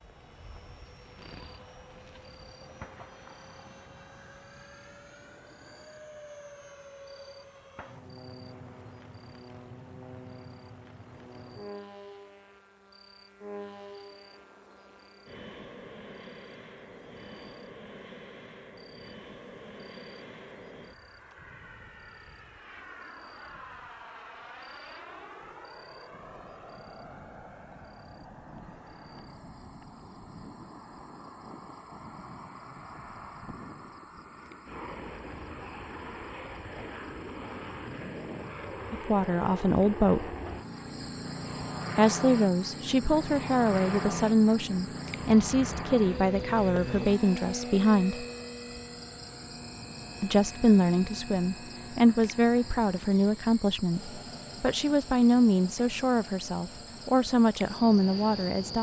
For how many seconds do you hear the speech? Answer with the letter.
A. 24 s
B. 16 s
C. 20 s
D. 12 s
B.